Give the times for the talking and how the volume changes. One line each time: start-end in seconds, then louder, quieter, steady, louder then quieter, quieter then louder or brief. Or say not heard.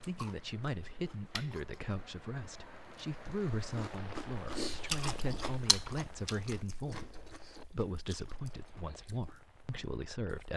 0.0-10.5 steady.